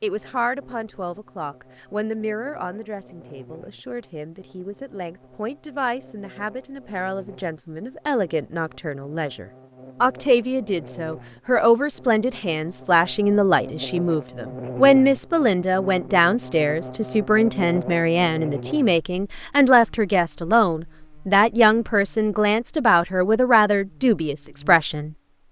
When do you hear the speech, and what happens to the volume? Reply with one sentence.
You can hear the speech from 0.0 to 25.1 s, getting louder.